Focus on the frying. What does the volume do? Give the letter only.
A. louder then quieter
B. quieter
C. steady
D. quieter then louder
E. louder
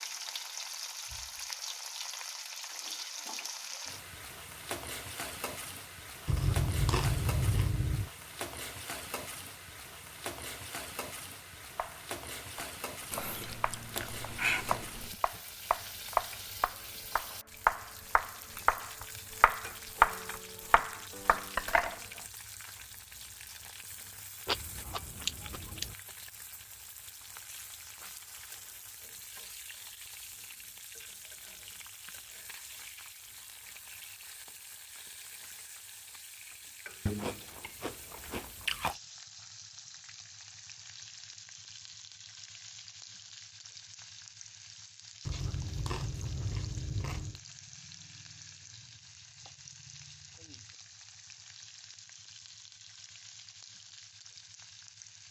B.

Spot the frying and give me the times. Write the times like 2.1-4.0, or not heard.
0.0-55.2.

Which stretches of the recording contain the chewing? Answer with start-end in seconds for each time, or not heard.
6.2-8.1, 13.1-15.2, 24.4-25.9, 37.0-39.0, 45.2-47.4.